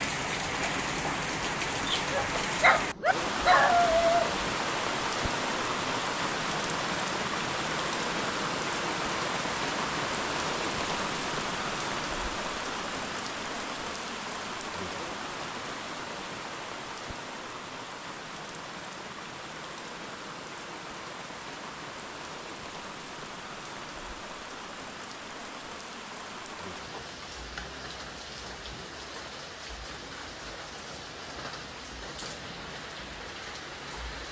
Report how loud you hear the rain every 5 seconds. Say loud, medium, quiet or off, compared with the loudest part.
loud, loud, loud, medium, medium, medium, medium.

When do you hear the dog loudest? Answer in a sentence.
The volume of the dog peaks at 4 seconds.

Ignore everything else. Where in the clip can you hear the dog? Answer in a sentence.
You can hear the dog from 2.1 to 4.3 s.